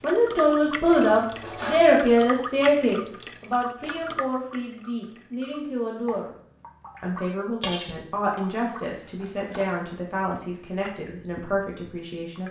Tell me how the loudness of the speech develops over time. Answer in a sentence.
The volume of the speech goes down.